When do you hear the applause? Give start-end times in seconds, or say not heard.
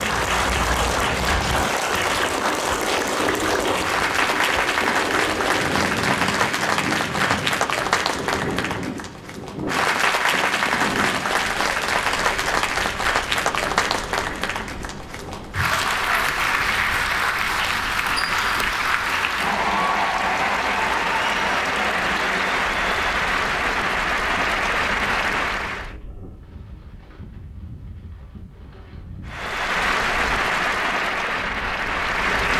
0.0-25.9, 29.2-32.5.